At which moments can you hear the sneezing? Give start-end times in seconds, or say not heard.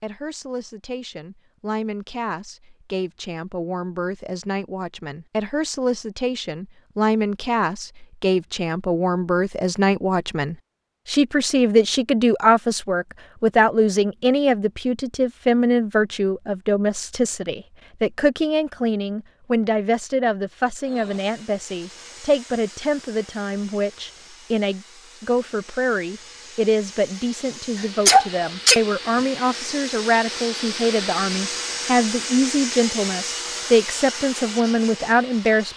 27.8-28.8.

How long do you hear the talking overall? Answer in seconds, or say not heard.
36 s.